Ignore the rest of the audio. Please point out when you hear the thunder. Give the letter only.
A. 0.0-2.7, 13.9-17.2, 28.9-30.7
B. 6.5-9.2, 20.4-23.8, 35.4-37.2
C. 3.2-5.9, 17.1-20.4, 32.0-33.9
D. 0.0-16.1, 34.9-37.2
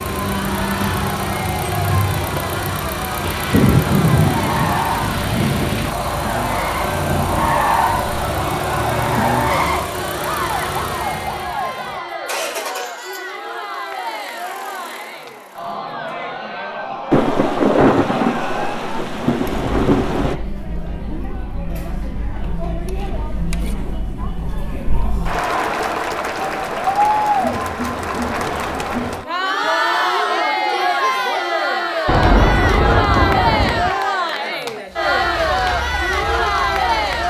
C.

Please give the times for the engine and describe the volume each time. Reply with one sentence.
You can hear the engine from 0.0 to 16.1 s, getting quieter; and briefly from 34.9 to 37.2 s.